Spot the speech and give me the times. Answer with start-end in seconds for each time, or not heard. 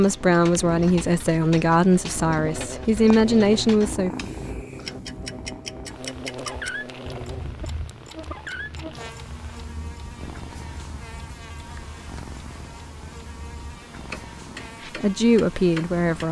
0.0-4.1, 14.9-16.2.